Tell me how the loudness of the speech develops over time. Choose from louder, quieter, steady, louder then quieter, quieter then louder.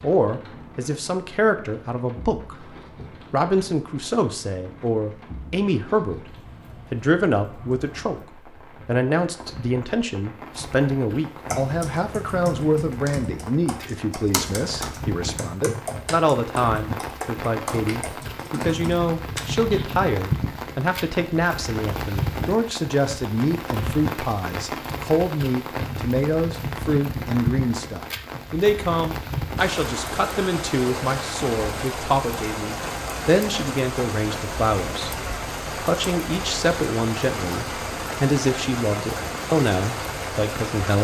steady.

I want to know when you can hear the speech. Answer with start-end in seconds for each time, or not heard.
0.0-40.9.